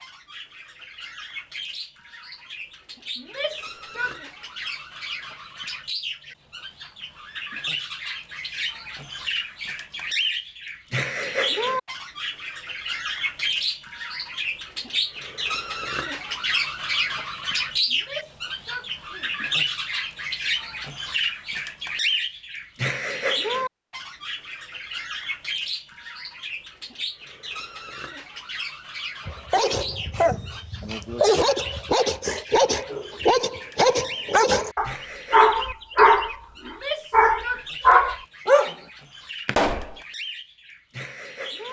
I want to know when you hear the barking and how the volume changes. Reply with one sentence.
You can hear the barking from 29.2 to 38.8 s, getting louder.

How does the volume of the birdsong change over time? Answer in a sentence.
The loudness of the birdsong goes up, then down.